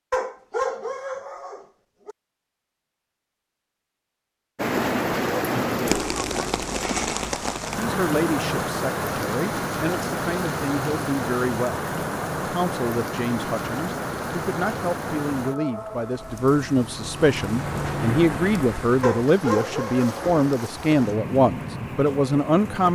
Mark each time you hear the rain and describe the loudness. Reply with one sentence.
The rain can be heard from 4.5 to 22.9 s, getting quieter.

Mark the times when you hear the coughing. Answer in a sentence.
The coughing can't be heard in this clip.